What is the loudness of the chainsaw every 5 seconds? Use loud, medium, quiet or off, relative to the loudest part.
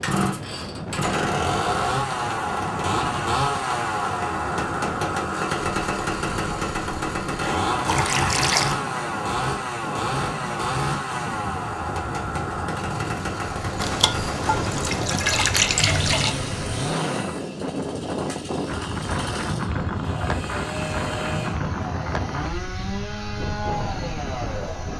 loud, loud, loud, medium, medium.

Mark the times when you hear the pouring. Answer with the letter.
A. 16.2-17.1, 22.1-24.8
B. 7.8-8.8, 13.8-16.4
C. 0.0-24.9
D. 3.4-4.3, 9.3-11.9
B.